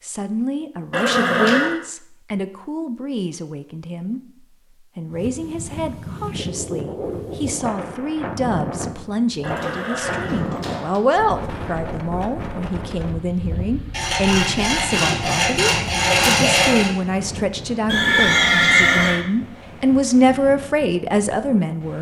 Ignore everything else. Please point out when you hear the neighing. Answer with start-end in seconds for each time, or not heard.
0.9-1.8, 9.4-11.0, 17.9-19.2.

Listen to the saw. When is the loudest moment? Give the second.
16 s.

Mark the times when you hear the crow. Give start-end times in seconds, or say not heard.
not heard.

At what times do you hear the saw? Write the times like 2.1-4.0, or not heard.
13.9-16.9.